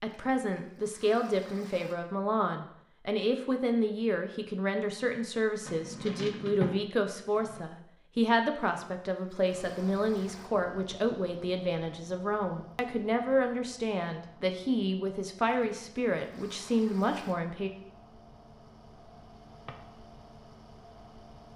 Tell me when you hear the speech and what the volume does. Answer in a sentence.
The speech can be heard from 0.0 to 17.7 s, at a steady volume.